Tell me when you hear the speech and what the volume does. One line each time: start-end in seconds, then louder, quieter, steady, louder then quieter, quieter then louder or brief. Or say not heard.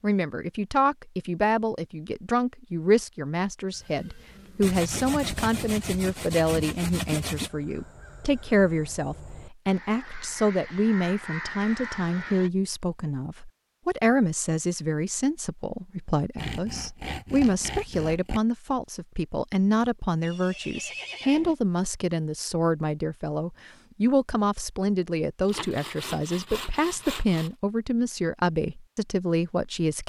0.0-30.0 steady.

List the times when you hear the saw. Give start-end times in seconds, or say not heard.
4.6-7.5, 16.4-18.4, 25.4-27.5.